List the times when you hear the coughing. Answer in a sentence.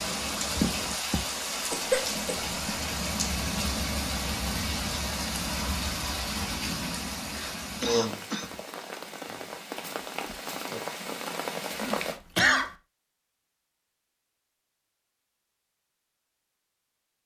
The coughing can be heard from 1.7 to 2.9 s, from 7.8 to 8.5 s and from 11.8 to 12.7 s.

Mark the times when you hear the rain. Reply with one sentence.
You can hear the rain from 0.0 to 12.2 s.